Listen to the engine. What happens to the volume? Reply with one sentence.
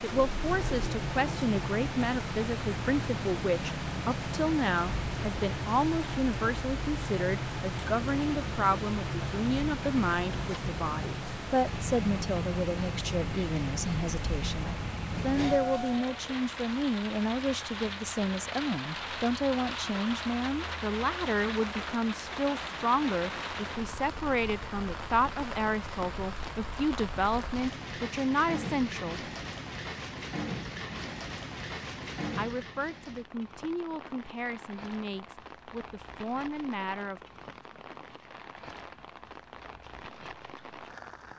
The loudness of the engine stays about the same.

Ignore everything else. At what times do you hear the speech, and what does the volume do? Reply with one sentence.
The speech can be heard from 0.0 to 29.2 s, at a steady volume; and from 32.4 to 37.2 s, getting quieter then louder.